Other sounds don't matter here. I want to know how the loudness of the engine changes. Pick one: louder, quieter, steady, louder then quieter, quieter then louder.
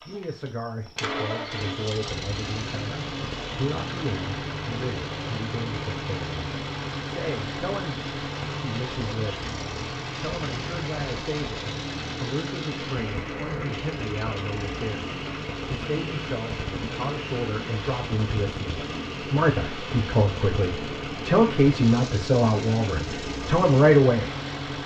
steady.